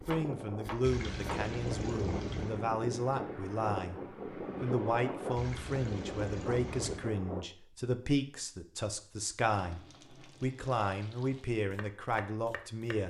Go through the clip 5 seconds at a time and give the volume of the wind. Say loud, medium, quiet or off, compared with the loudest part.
loud, loud, off.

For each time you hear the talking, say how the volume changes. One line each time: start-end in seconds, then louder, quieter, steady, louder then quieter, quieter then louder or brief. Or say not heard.
0.1-13.0 steady.